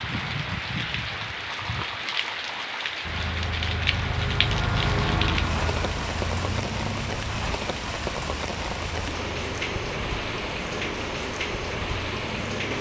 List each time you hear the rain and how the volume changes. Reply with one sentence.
You can hear the rain from 0.0 to 12.7 s, at a steady volume.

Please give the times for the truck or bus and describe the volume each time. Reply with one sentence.
You can hear the truck or bus from 3.0 to 12.7 s, getting quieter.